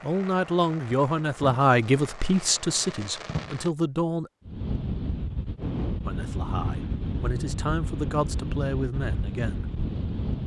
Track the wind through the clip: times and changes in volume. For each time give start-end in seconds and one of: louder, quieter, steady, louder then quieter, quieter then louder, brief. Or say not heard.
4.5-10.4 steady.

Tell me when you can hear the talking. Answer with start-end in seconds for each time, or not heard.
0.0-4.3, 6.0-9.7.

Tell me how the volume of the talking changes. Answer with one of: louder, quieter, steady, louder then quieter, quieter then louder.
quieter.